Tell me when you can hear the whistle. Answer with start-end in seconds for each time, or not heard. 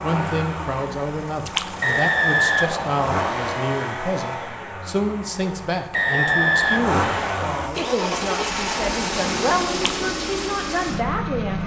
1.8-3.5, 5.9-7.7.